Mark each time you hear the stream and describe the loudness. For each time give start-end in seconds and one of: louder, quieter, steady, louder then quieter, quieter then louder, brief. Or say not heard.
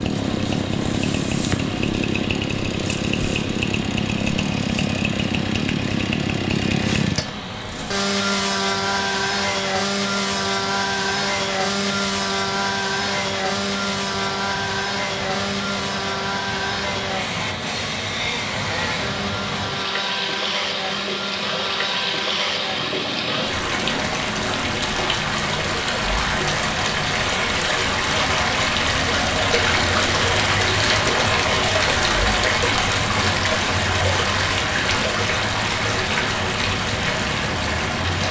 0.0-38.2 louder.